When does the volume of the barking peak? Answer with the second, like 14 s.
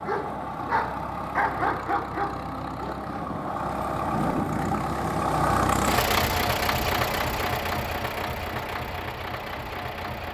2 s.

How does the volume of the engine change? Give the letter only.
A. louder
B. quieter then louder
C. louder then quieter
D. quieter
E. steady
C.